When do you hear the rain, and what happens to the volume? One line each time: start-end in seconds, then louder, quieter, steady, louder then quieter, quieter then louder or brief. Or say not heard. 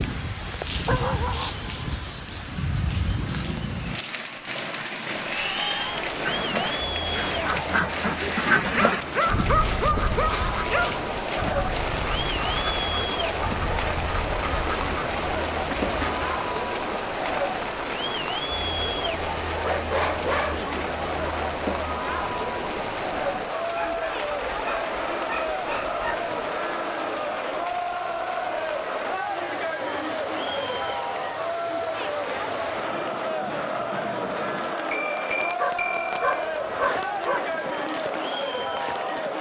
0.0-39.3 quieter.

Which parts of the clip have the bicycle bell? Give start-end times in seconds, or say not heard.
34.9-36.2.